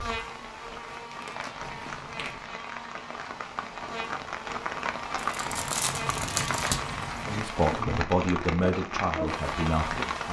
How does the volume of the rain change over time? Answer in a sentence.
The loudness of the rain goes up.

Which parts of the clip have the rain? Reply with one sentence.
The rain can be heard from 0.0 to 10.2 s.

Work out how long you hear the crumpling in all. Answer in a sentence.
You can hear the crumpling for 3 seconds altogether.